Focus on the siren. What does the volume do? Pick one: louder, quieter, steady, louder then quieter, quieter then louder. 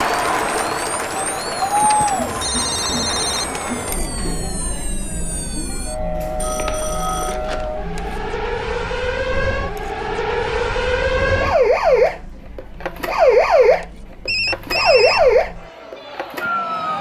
louder.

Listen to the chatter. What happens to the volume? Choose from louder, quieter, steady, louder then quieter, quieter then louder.
quieter.